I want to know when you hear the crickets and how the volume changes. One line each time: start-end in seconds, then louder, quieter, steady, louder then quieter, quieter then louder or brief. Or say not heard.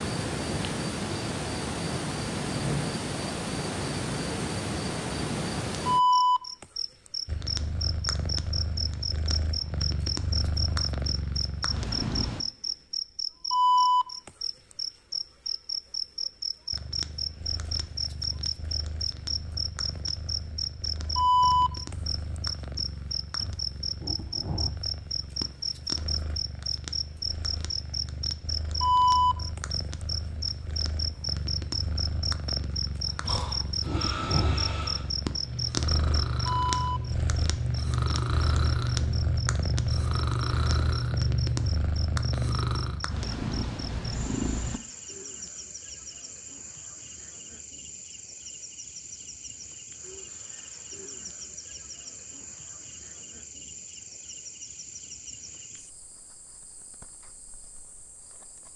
0.0-58.7 quieter.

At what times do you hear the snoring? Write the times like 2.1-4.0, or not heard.
33.0-43.0.